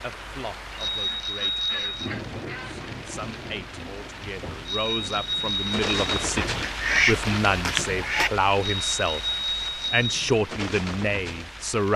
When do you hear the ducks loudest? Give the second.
7 s.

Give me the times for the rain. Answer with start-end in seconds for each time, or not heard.
0.0-11.9.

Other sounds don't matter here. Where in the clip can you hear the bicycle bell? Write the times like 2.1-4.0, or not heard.
0.8-2.1, 4.7-6.2, 8.6-10.1.